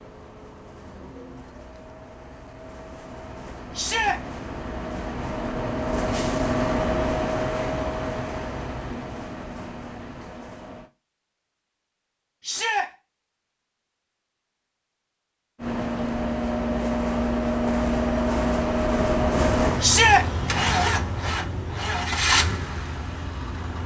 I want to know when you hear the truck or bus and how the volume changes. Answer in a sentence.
The truck or bus can be heard from 0.0 to 10.9 s, getting louder then quieter; and from 15.6 to 23.8 s, at a steady volume.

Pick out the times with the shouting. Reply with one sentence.
You can hear the shouting from 3.8 to 4.2 s, from 12.4 to 12.8 s and from 19.8 to 20.2 s.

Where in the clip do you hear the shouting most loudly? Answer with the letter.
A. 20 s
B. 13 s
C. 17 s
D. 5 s
A.